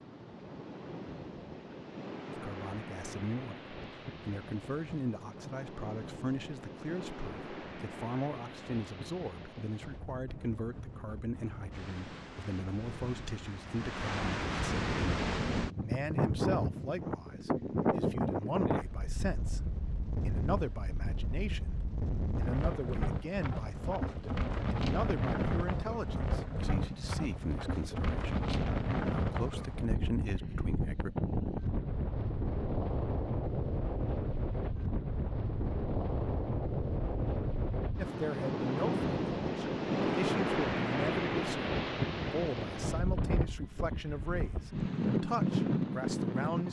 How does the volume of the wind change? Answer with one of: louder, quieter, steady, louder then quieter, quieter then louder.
louder.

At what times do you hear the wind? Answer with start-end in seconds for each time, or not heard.
0.0-46.6.